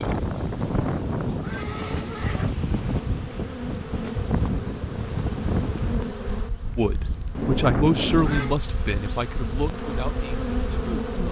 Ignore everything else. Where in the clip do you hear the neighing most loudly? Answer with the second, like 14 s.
8 s.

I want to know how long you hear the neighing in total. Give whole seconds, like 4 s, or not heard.
3 s.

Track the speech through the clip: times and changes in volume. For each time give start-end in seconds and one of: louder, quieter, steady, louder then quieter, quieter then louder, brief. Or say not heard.
6.8-11.2 quieter.